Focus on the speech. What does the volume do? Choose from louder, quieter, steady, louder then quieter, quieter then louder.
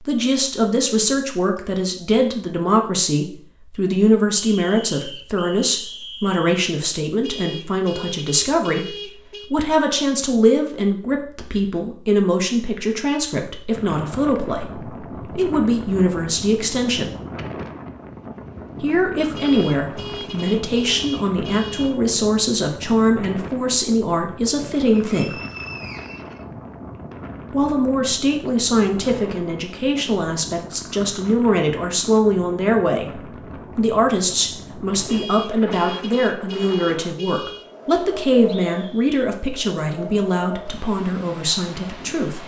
steady.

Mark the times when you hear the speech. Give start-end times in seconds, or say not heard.
0.0-17.1, 18.8-25.4, 27.5-42.4.